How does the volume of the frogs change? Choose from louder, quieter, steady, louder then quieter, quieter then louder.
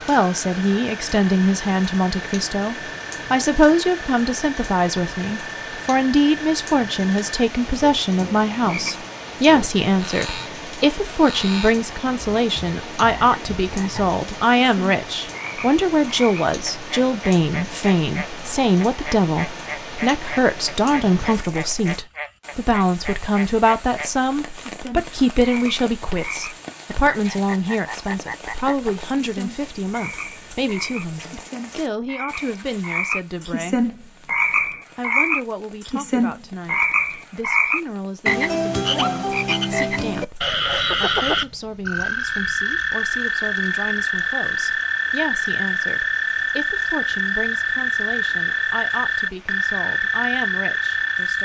louder.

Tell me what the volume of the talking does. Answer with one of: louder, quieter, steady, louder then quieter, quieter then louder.
quieter.